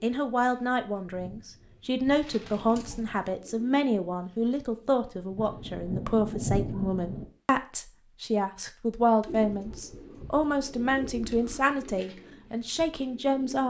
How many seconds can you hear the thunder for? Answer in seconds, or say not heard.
2 s.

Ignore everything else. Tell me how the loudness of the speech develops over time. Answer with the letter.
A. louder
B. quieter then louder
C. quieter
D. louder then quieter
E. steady
E.